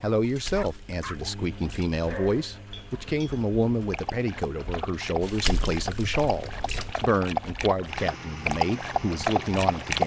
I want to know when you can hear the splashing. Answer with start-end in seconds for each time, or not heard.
0.2-1.9, 5.2-7.0.